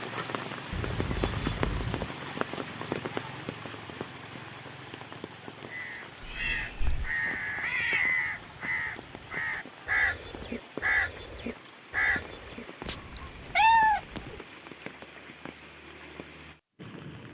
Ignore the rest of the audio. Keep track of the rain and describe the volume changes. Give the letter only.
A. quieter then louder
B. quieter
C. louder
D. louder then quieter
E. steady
B.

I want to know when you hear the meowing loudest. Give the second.
14 s.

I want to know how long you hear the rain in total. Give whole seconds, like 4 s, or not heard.
17 s.